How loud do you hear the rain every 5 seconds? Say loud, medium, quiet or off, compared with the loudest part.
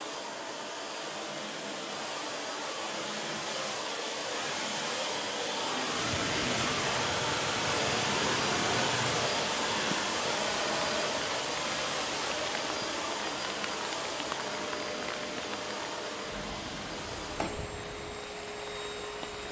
off, loud, loud, medium.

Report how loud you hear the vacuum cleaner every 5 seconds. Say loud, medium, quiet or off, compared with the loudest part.
medium, loud, loud, medium.